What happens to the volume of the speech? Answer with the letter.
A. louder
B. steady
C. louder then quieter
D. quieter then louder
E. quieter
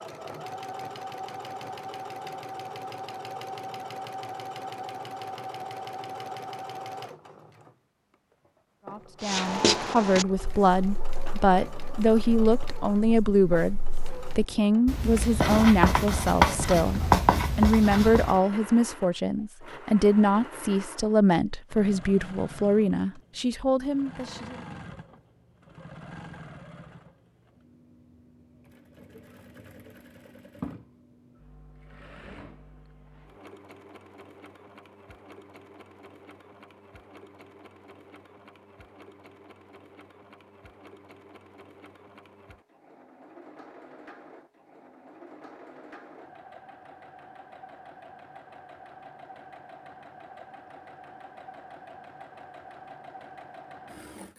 B.